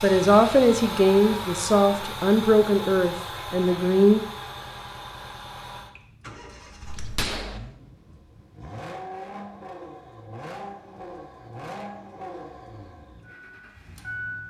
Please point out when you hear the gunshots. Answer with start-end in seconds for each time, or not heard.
6.8-7.6.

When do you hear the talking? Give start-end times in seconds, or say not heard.
0.0-4.2.